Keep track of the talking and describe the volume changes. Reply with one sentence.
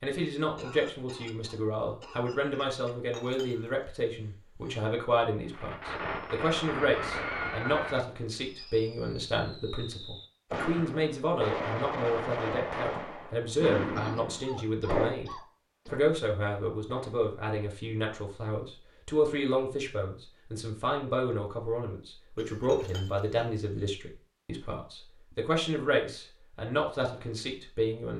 The volume of the talking stays about the same.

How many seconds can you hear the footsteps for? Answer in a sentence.
The footsteps can't be heard in this clip.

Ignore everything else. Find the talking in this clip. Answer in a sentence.
The talking can be heard from 0.0 to 28.1 s.